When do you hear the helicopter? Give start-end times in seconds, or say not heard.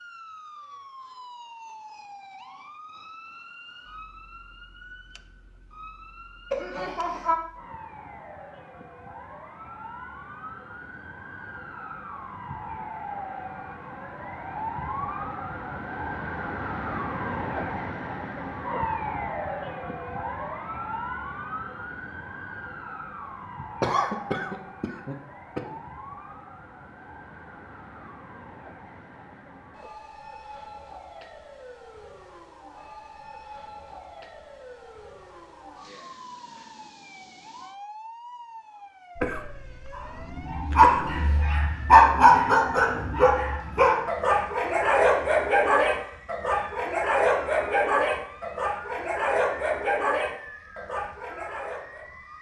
not heard.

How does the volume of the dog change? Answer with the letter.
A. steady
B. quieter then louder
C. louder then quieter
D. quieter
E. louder
D.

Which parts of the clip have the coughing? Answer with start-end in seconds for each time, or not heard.
6.5-7.3, 23.8-25.8, 39.1-41.5.